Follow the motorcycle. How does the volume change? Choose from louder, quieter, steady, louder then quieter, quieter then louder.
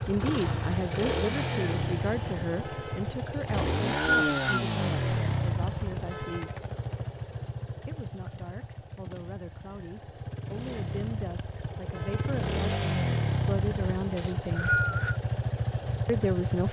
quieter then louder.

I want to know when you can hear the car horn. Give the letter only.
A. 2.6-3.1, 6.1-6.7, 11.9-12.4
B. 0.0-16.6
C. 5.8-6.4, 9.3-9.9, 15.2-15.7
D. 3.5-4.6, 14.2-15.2
A.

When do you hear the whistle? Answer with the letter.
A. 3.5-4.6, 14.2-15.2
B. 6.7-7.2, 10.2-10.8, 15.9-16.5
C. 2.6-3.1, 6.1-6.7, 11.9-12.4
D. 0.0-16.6
A.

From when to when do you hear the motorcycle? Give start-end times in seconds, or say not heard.
0.0-16.6.